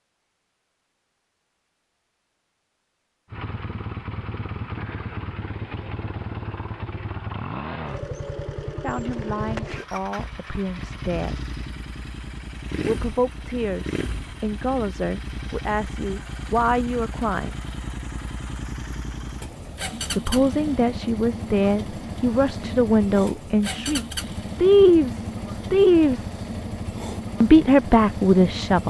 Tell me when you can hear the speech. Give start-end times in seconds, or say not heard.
8.8-11.3, 12.8-17.6, 20.1-26.2, 27.4-28.8.